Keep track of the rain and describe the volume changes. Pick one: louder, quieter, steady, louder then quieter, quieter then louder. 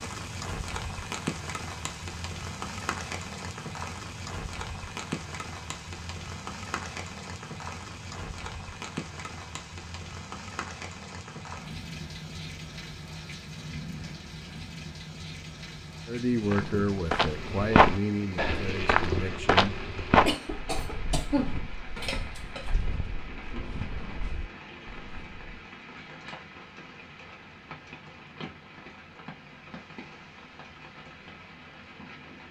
quieter.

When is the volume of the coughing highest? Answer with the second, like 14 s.
21 s.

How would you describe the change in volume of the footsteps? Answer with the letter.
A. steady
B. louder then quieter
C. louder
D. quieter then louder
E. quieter
E.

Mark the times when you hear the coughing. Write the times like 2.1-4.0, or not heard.
20.2-22.7.